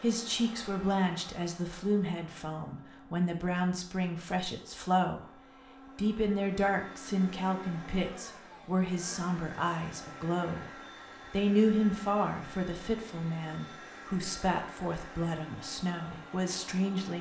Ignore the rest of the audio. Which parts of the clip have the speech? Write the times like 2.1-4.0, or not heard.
0.0-5.3, 6.0-17.1.